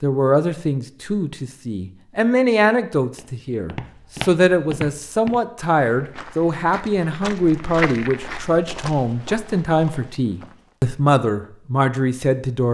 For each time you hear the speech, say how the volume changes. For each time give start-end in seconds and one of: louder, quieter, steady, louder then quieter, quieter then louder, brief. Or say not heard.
0.0-12.6 steady.